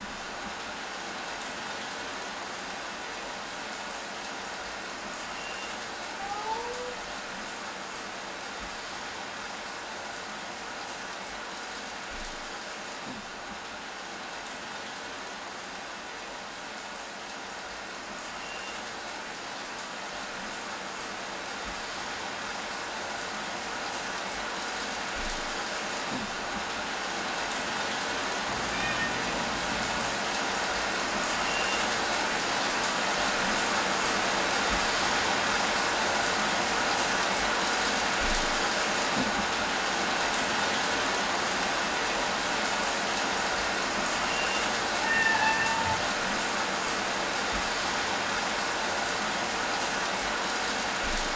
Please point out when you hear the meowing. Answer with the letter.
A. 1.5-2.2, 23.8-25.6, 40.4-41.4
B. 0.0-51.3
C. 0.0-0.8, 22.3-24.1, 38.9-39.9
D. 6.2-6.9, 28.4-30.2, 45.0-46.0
D.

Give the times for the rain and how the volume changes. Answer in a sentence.
The rain can be heard from 0.0 to 51.3 s, getting louder.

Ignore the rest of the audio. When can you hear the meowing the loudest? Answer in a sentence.
The volume of the meowing peaks at 45 seconds.